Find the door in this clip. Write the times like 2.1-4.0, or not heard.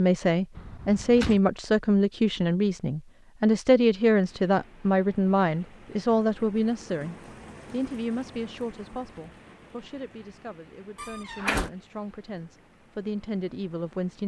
0.6-1.4, 10.9-11.7.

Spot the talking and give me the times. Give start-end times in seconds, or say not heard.
0.0-14.2.